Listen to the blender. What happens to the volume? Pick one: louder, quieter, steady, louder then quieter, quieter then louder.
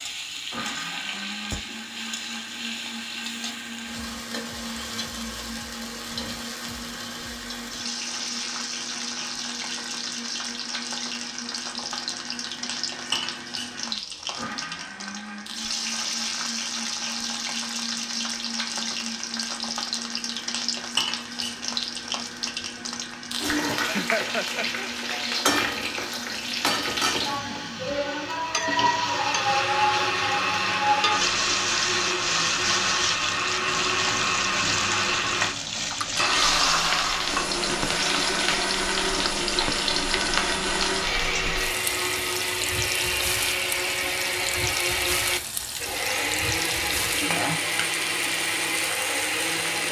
louder.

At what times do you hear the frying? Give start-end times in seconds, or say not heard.
0.0-49.8.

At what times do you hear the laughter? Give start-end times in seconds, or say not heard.
23.6-24.9.